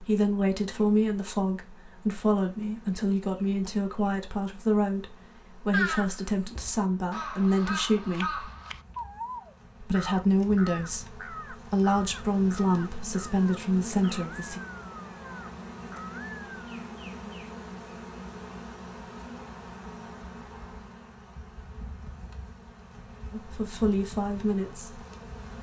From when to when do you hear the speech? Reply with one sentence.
You can hear the speech from 0.0 to 8.5 s, from 9.8 to 14.6 s and from 23.3 to 25.1 s.